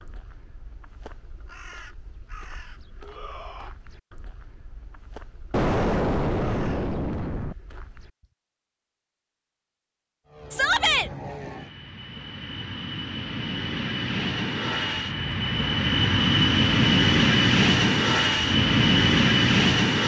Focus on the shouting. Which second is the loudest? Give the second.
11 s.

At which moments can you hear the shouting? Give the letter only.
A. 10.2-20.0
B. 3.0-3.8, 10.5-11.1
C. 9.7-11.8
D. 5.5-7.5
B.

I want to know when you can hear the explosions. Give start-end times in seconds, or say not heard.
5.5-7.5.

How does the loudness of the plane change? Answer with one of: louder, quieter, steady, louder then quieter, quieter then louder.
louder.